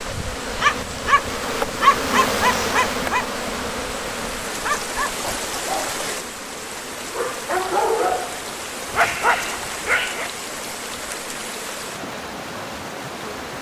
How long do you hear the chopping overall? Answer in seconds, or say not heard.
not heard.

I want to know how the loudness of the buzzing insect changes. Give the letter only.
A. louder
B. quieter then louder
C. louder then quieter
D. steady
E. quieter
E.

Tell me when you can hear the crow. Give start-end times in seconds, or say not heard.
not heard.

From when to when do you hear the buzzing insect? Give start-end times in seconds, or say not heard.
0.0-13.5.